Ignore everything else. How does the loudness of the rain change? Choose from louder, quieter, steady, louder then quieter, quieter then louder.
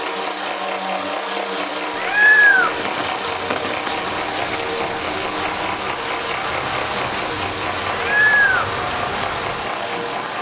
steady.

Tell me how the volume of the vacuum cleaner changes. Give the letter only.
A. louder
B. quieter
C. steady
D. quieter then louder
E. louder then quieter
C.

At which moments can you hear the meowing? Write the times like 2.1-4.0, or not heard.
1.9-2.9, 7.9-8.7.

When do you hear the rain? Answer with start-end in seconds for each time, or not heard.
2.5-10.3.